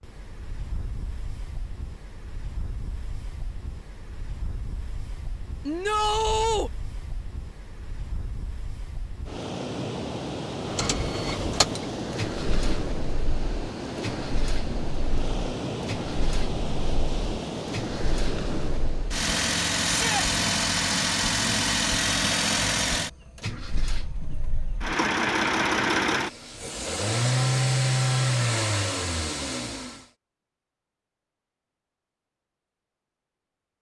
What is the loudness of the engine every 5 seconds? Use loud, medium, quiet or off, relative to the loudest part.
off, off, medium, medium, loud, loud, off.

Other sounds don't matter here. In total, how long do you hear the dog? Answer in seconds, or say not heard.
not heard.